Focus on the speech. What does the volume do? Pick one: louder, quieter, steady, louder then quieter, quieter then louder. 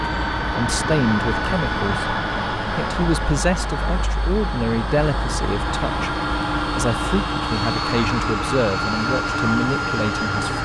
steady.